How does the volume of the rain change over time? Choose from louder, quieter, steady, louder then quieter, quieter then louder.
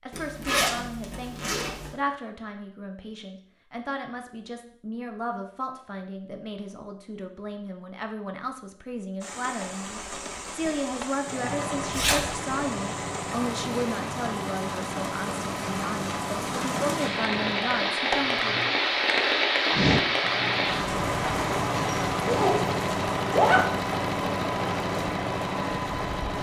louder then quieter.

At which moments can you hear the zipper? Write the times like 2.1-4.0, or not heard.
0.1-1.9, 11.9-12.3, 22.2-23.9.